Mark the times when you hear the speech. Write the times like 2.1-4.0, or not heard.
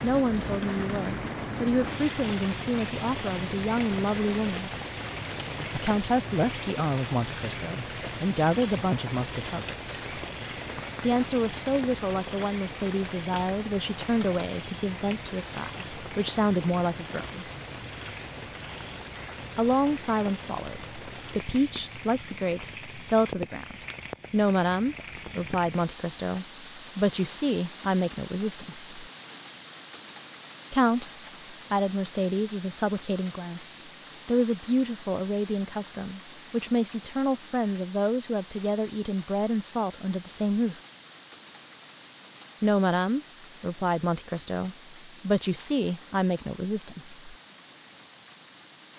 0.0-4.7, 5.8-10.2, 11.0-17.4, 19.6-29.0, 30.7-40.8, 42.6-47.4.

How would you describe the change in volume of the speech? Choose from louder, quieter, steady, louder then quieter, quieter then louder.
steady.